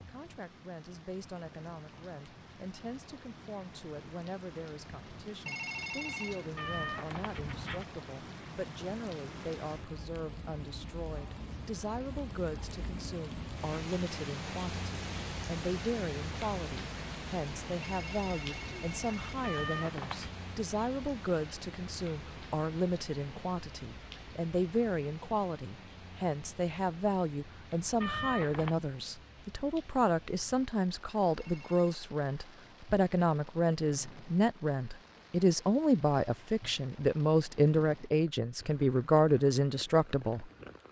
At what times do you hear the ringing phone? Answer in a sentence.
The ringing phone can be heard from 5.5 to 6.5 s, from 17.8 to 19.4 s and from 31.4 to 32.0 s.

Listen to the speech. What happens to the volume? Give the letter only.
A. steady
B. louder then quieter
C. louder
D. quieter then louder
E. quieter
C.